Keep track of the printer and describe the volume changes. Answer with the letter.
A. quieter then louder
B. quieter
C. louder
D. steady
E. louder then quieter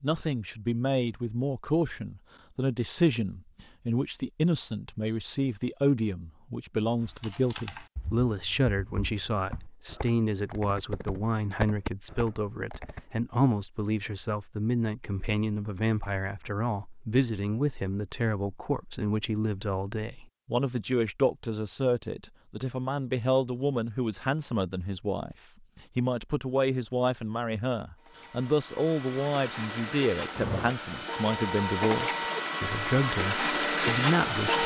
C.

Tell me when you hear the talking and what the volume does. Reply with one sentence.
The talking can be heard from 0.0 to 34.6 s, at a steady volume.